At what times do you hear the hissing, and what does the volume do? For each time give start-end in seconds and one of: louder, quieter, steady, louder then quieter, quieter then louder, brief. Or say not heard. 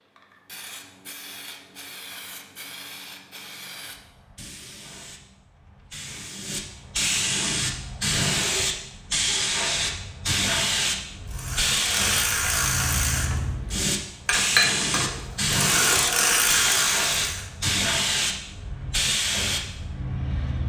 0.0-20.6 louder.